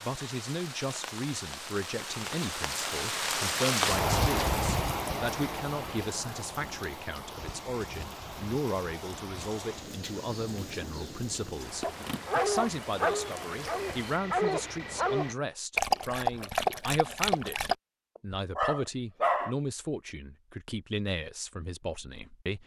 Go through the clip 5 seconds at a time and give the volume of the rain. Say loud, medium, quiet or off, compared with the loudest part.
loud, medium, medium, off, off.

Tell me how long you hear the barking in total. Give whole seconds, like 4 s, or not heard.
8 s.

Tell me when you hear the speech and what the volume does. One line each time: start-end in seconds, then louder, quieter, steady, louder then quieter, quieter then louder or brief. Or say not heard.
0.0-22.6 steady.